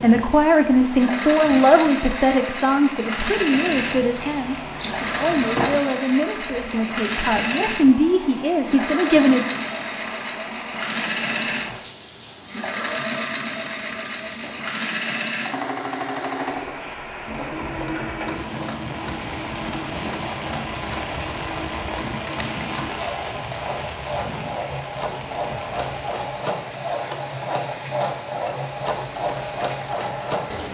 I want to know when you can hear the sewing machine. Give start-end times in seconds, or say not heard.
0.0-30.6.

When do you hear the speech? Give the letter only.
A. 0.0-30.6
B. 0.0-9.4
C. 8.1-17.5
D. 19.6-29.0
B.